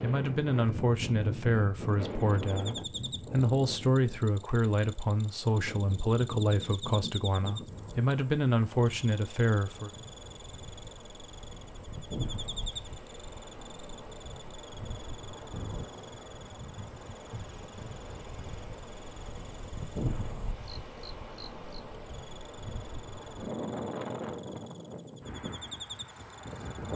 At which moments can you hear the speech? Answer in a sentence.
The speech can be heard from 0.0 to 9.9 s.